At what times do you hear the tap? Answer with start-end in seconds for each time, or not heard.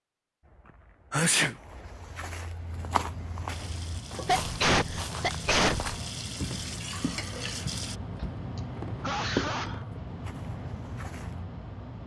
3.5-8.0.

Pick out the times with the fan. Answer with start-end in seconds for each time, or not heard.
2.5-12.0.